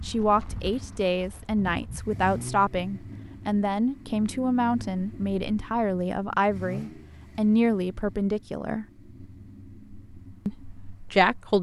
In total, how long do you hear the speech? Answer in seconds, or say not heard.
10 s.